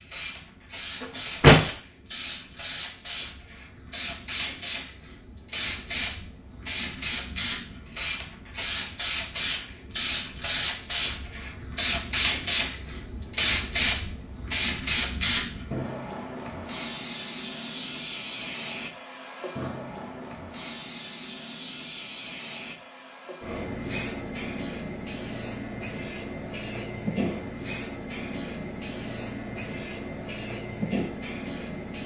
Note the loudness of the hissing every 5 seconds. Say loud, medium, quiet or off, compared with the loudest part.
medium, medium, loud, medium, medium, medium, medium.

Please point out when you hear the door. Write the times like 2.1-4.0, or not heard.
1.0-1.7.